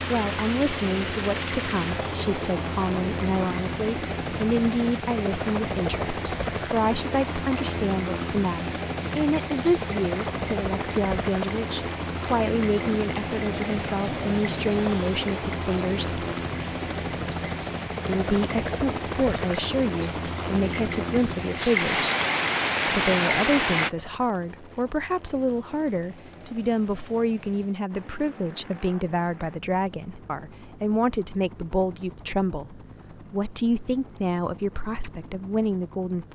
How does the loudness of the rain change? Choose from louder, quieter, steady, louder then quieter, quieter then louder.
louder.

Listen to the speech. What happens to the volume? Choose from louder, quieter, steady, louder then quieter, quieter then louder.
steady.